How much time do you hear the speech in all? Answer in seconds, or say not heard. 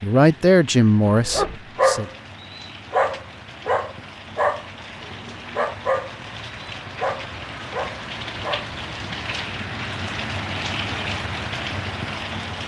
2 s.